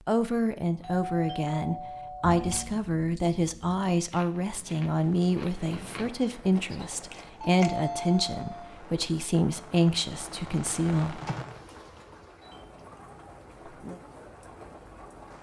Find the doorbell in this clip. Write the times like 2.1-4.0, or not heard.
0.7-2.6, 7.5-8.8, 11.2-12.6.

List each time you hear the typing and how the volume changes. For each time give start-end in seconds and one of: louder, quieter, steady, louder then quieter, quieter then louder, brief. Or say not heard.
not heard.